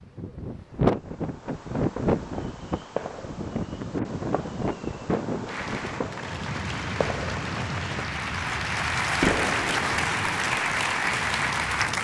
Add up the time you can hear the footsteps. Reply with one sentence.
The footsteps can't be heard in this clip.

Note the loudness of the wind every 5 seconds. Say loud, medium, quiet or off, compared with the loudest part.
loud, medium, medium.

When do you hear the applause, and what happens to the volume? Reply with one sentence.
You can hear the applause from 5.5 to 11.9 s, getting louder.